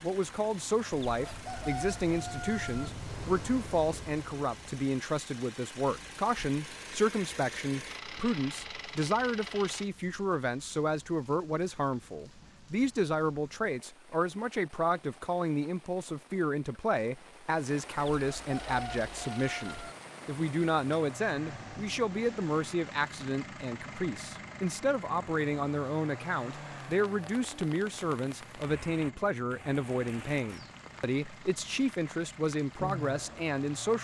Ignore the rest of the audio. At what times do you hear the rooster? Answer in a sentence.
The rooster can be heard from 1.1 to 2.9 s and from 18.1 to 19.9 s.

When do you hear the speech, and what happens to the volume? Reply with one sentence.
The speech can be heard from 0.0 to 33.9 s, at a steady volume.